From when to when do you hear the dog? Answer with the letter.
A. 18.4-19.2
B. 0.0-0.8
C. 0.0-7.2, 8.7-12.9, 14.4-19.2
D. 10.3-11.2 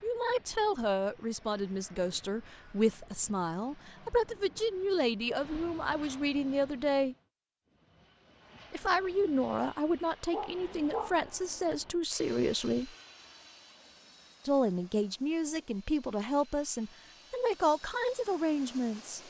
D.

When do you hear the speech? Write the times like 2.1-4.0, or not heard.
0.0-7.2, 8.7-12.9, 14.4-19.2.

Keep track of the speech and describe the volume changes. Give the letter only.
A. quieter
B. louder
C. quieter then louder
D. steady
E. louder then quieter
D.